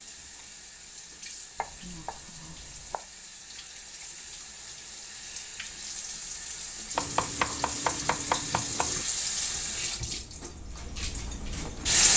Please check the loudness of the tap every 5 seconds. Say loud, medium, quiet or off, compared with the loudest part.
quiet, medium, loud.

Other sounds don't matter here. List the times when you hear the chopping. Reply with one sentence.
The chopping can be heard from 1.6 to 3.0 s and from 7.0 to 9.1 s.